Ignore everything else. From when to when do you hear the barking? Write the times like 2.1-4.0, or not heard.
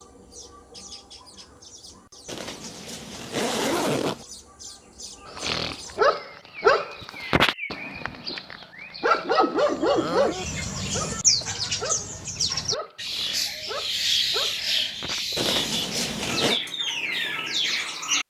5.2-15.3.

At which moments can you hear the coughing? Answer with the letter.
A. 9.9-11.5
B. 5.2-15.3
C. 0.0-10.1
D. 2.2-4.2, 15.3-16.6
A.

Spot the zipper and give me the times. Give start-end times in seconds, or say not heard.
2.2-4.2, 15.3-16.6.